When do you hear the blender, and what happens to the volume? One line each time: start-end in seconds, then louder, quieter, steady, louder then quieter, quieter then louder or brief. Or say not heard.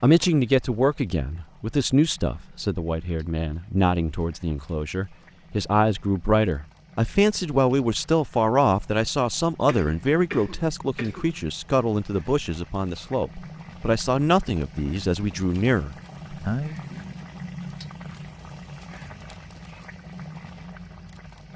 not heard.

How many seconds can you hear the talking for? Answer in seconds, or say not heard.
17 s.